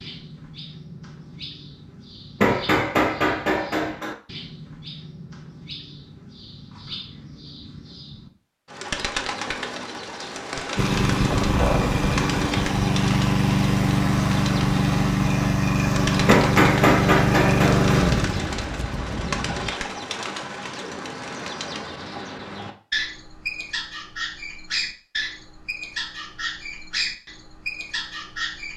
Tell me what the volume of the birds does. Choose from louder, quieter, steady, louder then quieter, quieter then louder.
louder.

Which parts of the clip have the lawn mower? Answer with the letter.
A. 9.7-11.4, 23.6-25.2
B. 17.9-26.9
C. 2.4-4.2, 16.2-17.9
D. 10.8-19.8
D.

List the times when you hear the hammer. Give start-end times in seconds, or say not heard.
2.4-4.2, 16.2-17.9.